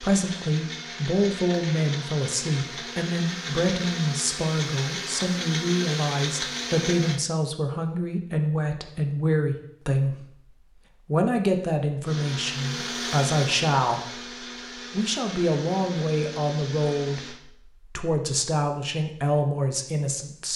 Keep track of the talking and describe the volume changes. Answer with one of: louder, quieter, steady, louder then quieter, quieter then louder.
steady.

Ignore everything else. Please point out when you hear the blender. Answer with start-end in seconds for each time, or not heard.
0.0-7.2, 12.0-17.4.